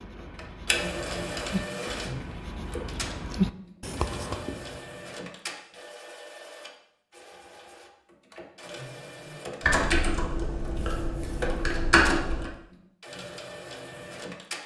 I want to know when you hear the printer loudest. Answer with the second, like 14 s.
1 s.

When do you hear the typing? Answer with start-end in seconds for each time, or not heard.
9.6-12.5.